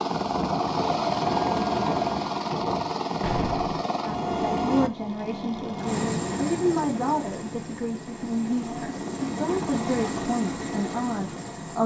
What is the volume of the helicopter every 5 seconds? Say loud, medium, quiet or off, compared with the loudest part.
loud, medium, medium.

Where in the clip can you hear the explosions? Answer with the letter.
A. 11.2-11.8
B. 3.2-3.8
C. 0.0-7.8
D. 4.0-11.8
B.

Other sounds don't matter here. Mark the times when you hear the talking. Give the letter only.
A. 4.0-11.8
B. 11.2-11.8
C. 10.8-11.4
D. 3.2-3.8
A.